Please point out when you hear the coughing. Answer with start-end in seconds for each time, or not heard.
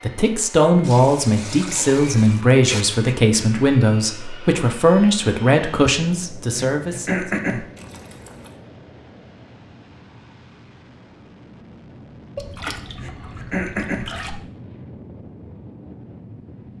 3.0-3.6, 6.5-7.7, 12.9-14.1.